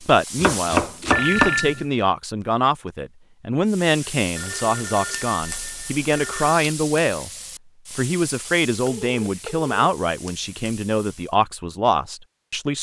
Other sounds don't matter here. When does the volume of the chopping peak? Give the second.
1 s.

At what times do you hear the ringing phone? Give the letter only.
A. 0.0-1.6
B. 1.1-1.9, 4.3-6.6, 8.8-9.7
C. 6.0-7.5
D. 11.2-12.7
B.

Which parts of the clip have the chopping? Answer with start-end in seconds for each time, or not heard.
0.0-1.6.